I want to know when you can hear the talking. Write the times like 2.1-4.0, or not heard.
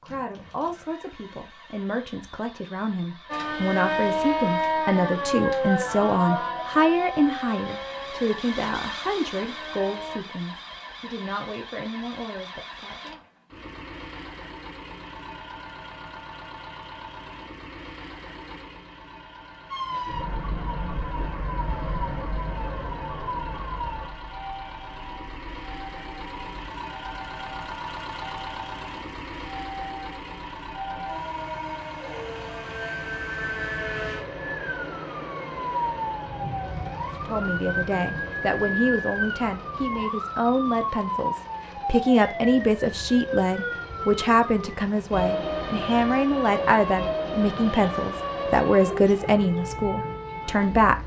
0.0-13.2, 37.2-51.0.